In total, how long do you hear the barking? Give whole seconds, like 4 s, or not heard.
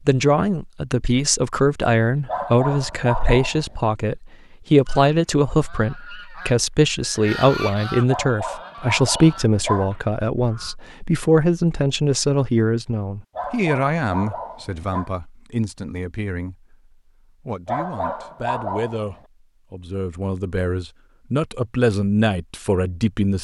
7 s.